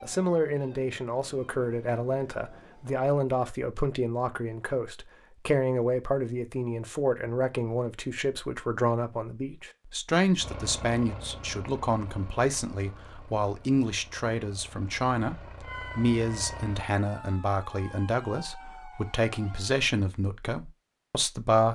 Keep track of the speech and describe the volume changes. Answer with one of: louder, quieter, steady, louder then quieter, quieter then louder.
steady.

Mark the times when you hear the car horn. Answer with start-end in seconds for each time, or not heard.
not heard.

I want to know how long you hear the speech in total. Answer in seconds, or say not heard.
22 s.